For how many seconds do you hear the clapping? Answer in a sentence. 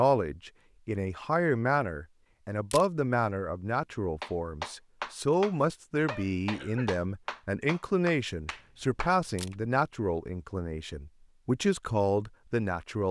The clapping can be heard for 5 seconds in total.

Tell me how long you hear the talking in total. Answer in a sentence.
You can hear the talking for 13 seconds altogether.